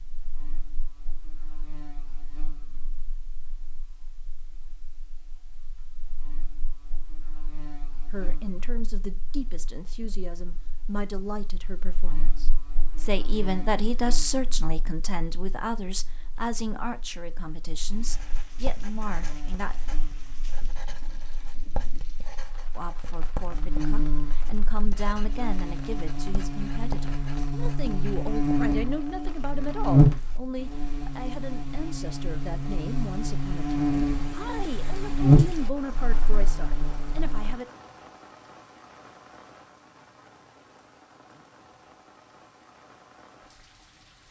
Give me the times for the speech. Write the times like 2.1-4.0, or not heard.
8.1-19.8, 22.8-37.6.